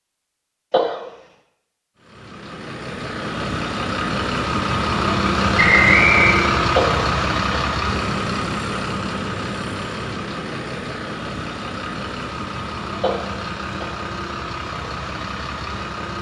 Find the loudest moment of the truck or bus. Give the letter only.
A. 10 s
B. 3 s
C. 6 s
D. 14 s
C.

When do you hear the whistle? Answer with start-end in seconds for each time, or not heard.
5.5-6.4.